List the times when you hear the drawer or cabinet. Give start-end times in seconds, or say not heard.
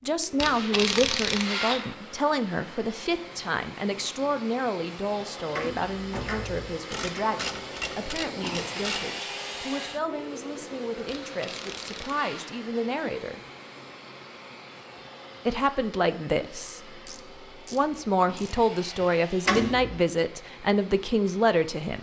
5.5-6.8, 19.4-20.0.